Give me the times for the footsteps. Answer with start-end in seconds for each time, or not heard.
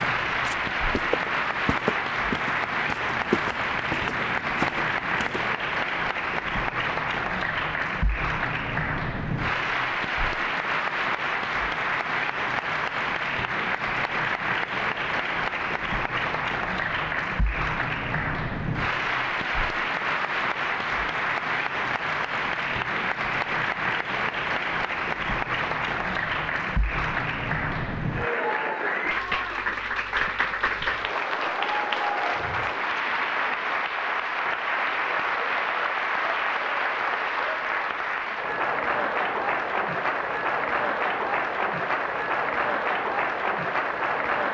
0.0-5.5.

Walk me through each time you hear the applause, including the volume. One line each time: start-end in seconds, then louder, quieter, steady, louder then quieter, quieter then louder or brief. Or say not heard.
0.0-44.5 steady.